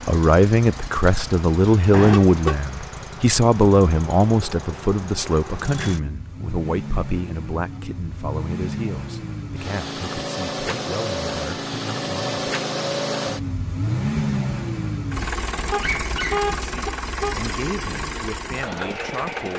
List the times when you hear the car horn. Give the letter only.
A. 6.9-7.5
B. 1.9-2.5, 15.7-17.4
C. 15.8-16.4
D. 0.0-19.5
B.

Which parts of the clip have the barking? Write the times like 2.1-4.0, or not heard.
15.8-16.4.